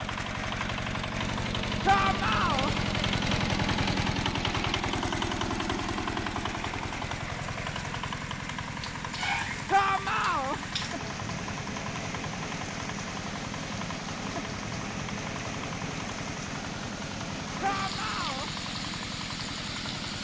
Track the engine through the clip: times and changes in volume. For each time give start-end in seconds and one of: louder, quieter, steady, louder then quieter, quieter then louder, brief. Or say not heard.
0.0-20.1 quieter.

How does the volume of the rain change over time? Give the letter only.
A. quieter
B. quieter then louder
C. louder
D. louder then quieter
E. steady
E.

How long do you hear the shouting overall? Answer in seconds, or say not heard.
3 s.